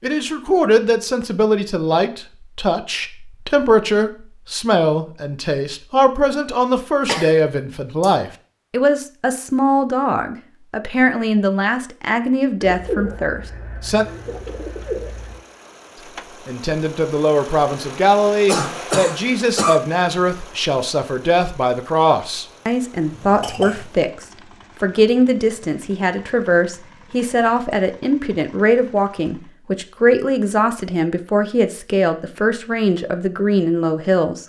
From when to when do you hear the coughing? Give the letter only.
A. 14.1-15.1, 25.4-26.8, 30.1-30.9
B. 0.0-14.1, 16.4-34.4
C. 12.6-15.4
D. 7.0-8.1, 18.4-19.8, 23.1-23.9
D.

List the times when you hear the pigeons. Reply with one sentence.
The pigeons can be heard from 12.6 to 15.4 s.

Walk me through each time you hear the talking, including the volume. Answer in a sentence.
The talking can be heard from 0.0 to 14.1 s, at a steady volume; and from 16.4 to 34.4 s, at a steady volume.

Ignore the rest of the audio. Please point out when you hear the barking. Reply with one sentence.
You can't hear the barking here.